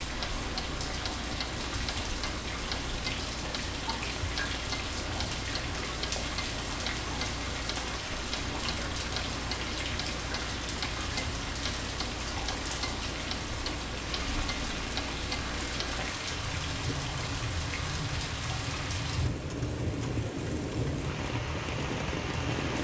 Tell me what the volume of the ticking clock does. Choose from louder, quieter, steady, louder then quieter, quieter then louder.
steady.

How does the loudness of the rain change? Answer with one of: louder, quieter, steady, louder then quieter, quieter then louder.
steady.